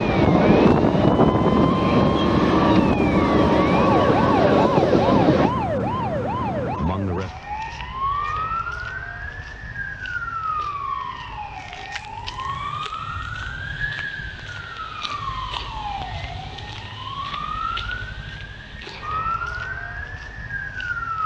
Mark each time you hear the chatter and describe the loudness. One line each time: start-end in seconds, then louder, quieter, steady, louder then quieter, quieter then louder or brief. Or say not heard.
not heard.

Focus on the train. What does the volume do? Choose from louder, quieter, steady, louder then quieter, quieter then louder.
steady.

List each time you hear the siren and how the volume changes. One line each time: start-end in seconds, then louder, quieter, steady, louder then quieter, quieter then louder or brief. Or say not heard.
0.0-21.2 quieter.